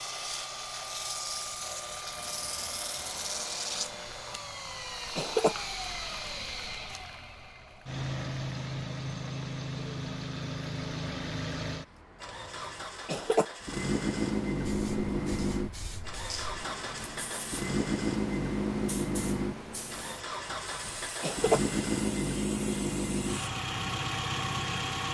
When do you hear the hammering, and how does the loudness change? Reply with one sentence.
The hammering can't be heard in this clip.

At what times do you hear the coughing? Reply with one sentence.
The coughing can be heard from 4.3 to 5.5 s, from 12.2 to 13.4 s and from 20.4 to 21.6 s.